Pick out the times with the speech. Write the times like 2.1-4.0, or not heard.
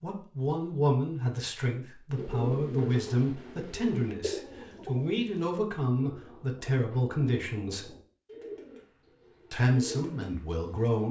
0.0-7.9, 9.5-11.0.